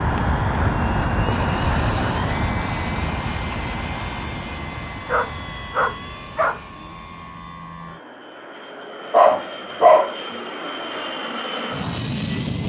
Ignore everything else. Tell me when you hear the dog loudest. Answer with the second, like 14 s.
10 s.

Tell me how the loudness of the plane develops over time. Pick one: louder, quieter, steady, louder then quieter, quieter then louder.
quieter then louder.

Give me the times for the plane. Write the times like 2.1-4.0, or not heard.
0.0-12.6.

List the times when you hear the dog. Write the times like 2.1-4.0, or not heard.
0.1-2.1, 5.0-6.6, 9.1-10.1.